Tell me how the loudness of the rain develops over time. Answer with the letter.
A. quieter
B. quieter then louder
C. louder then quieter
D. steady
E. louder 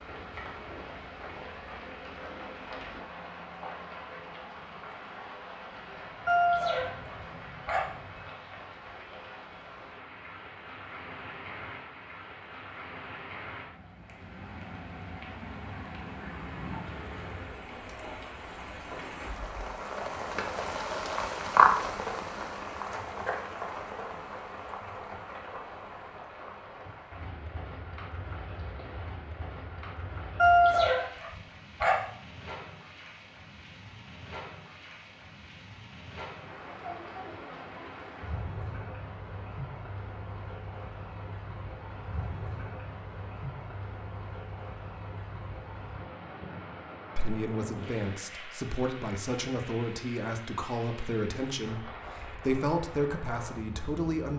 C.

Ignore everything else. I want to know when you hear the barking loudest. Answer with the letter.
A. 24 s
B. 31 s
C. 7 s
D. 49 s
B.